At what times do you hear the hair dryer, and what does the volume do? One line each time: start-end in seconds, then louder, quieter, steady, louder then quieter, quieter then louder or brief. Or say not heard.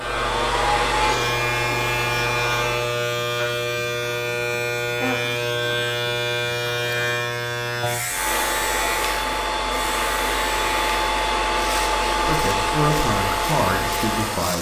0.0-3.0 brief
8.1-14.5 steady.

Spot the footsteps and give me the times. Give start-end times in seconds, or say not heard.
not heard.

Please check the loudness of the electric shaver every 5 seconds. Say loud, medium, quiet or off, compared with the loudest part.
loud, loud, medium.